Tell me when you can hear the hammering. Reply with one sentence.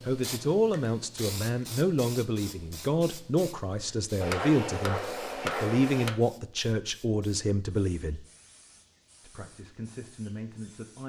The hammering can be heard from 4.2 to 6.2 s.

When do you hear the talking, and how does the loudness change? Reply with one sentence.
You can hear the talking from 0.1 to 8.2 s, at a steady volume; and briefly from 9.2 to 11.0 s.